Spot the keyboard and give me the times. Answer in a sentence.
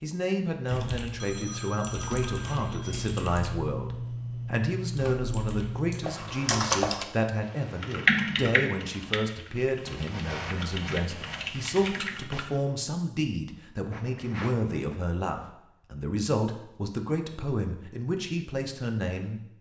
The keyboard can be heard from 0.7 to 12.4 s.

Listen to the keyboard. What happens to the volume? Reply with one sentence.
The volume of the keyboard goes up, then down.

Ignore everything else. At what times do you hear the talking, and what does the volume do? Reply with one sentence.
The talking can be heard from 0.0 to 19.4 s, at a steady volume.